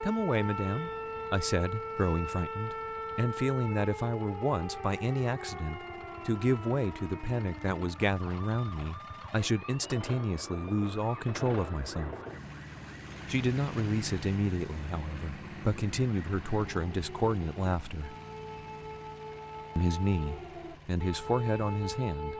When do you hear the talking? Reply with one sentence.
The talking can be heard from 0.0 to 12.2 s, from 13.2 to 18.1 s and from 19.8 to 22.3 s.